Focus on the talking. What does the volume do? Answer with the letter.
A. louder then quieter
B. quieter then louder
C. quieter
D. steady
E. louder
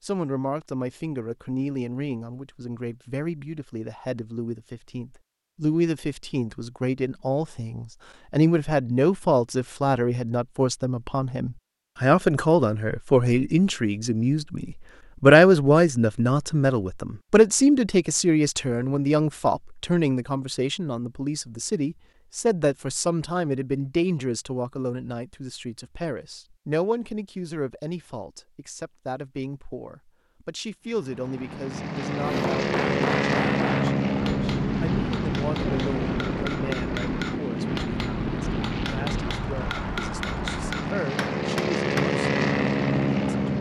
A.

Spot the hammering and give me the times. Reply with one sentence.
The hammering can be heard from 32.2 to 42.0 s.